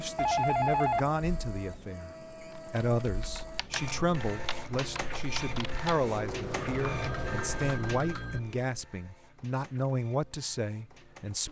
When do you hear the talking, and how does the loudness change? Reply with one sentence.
You can hear the talking from 0.0 to 11.4 s, at a steady volume.